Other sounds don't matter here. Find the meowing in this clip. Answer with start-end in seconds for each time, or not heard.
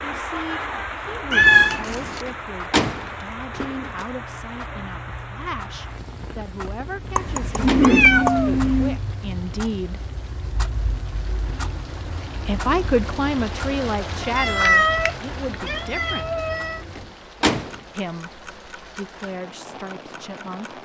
1.3-2.2, 7.2-9.0, 14.2-16.8.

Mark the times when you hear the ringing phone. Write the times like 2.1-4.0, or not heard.
not heard.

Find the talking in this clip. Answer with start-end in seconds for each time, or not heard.
0.0-10.0, 12.4-16.5, 17.9-20.8.